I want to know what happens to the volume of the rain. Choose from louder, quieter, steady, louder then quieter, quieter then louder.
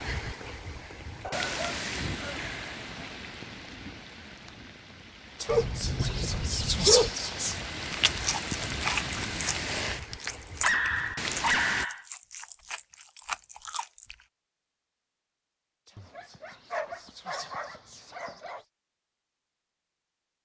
quieter then louder.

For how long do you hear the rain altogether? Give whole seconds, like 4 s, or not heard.
12 s.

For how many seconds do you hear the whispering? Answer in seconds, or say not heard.
5 s.